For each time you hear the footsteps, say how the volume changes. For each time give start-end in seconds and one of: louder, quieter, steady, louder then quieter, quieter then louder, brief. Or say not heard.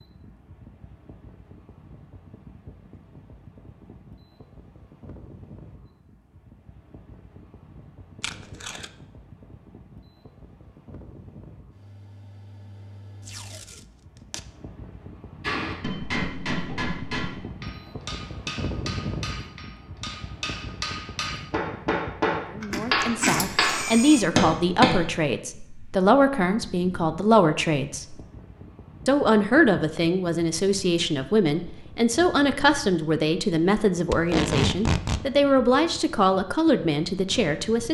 not heard.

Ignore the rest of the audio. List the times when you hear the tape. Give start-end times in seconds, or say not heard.
8.2-8.9, 13.2-14.4, 34.1-35.2.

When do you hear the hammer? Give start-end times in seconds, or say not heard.
15.4-24.9.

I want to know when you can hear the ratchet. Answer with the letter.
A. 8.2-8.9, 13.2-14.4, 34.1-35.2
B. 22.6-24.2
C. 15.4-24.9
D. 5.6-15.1
B.